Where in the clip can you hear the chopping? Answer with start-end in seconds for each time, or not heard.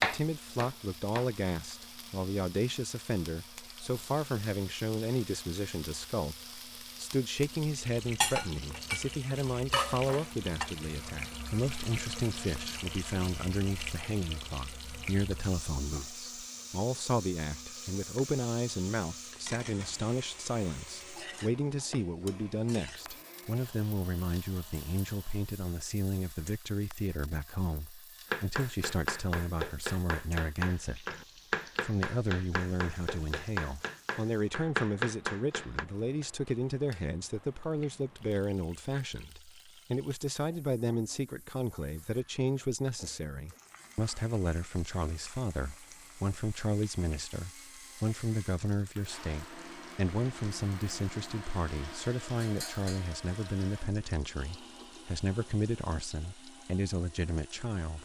0.0-1.8, 28.3-35.9.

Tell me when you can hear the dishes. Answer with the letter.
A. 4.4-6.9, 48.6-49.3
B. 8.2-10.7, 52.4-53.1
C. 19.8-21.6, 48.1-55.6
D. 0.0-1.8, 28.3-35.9
B.